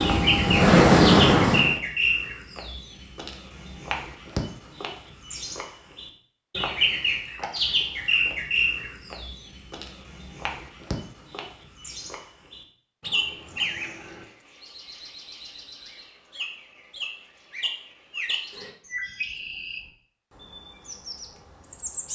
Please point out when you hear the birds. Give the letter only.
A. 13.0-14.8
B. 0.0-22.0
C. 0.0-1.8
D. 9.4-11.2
B.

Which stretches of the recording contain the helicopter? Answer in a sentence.
You can hear the helicopter from 0.0 to 1.8 s.